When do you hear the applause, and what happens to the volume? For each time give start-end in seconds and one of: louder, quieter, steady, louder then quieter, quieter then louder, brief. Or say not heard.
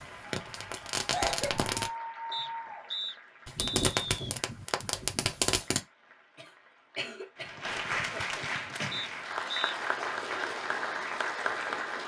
0.0-12.0 quieter then louder.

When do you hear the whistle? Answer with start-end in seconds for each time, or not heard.
2.3-4.3, 8.9-9.8.